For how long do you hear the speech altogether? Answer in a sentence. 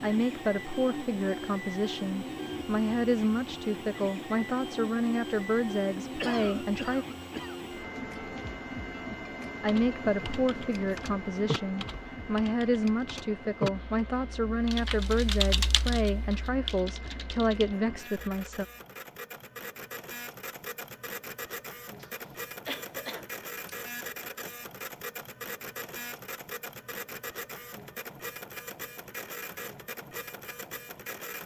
The speech can be heard for 16 seconds in total.